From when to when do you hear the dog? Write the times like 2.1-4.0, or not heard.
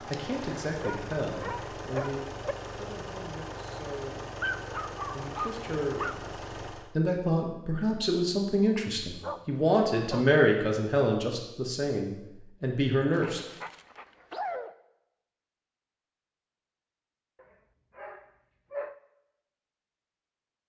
0.8-2.5, 4.4-6.2, 9.1-10.4, 13.1-14.7, 17.4-18.9.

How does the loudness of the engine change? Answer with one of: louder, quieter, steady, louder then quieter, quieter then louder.
steady.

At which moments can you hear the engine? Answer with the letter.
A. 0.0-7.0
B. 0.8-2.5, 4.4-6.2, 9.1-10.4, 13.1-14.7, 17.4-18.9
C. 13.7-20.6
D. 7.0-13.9
A.